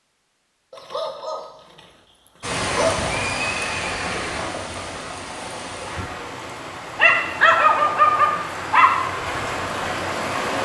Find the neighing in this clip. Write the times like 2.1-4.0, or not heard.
2.7-4.6.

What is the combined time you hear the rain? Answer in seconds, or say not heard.
8 s.